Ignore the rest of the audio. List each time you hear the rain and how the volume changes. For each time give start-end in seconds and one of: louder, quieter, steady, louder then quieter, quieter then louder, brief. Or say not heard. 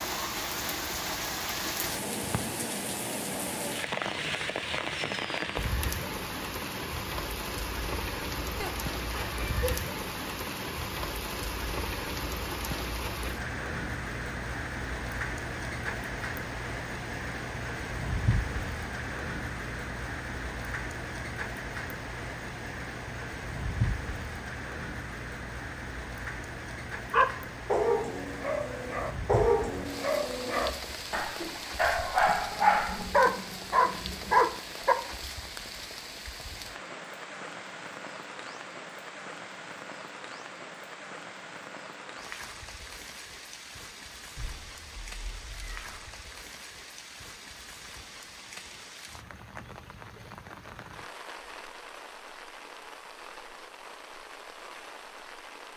0.0-55.7 quieter.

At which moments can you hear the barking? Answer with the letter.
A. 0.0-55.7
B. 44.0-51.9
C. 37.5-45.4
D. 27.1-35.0
D.